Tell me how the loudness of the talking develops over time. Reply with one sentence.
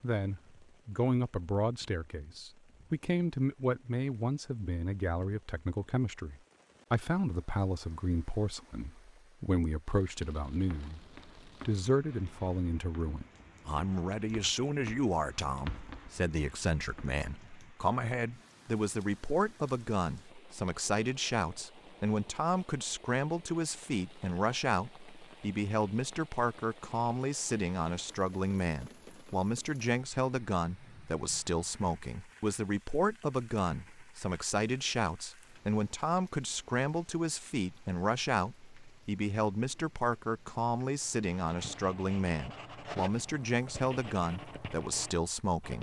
The volume of the talking stays about the same.